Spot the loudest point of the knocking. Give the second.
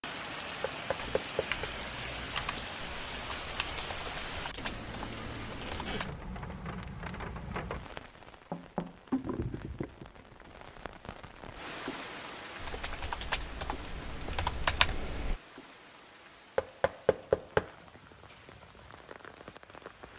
17 s.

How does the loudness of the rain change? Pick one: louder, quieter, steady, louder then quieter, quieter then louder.
quieter.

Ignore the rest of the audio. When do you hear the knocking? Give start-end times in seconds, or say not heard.
0.7-1.7, 8.5-9.7, 16.6-17.7.